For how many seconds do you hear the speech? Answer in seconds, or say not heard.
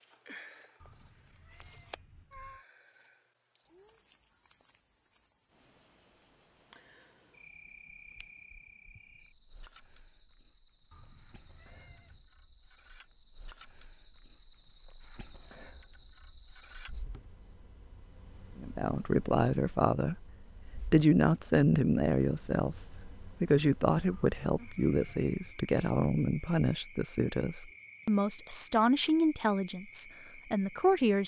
13 s.